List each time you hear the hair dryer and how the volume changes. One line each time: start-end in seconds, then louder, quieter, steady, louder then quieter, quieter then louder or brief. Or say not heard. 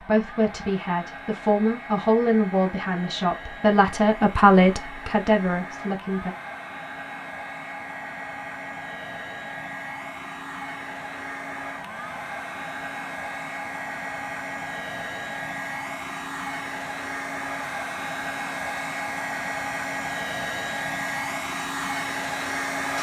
0.0-22.9 louder.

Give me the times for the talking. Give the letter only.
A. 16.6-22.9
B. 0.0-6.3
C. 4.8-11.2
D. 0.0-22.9
B.